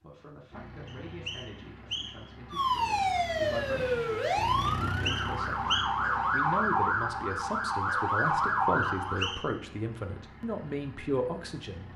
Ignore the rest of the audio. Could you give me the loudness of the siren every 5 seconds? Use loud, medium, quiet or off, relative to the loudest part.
loud, loud, off.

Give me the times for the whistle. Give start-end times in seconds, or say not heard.
0.8-2.3, 4.7-5.9, 8.8-9.4.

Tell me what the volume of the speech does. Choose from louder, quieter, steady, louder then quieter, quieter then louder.
louder.